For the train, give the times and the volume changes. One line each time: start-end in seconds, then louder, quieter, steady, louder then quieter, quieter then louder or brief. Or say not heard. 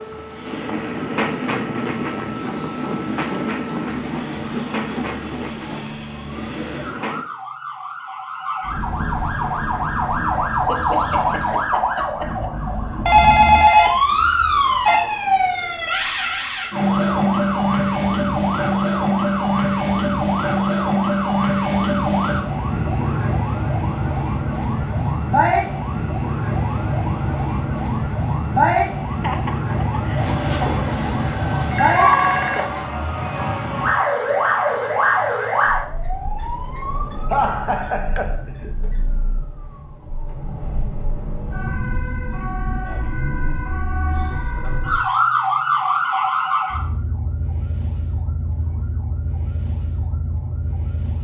0.0-7.2 quieter.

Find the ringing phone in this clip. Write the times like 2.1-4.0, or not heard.
13.1-15.0, 30.1-32.9.